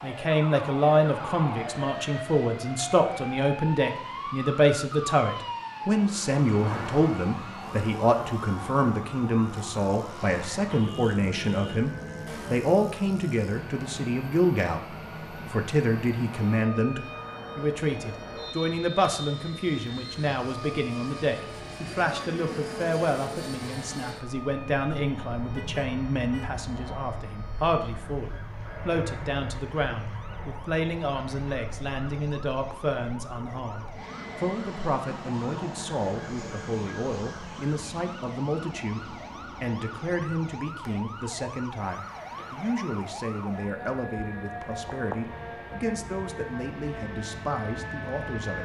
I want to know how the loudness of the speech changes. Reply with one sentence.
The loudness of the speech goes down.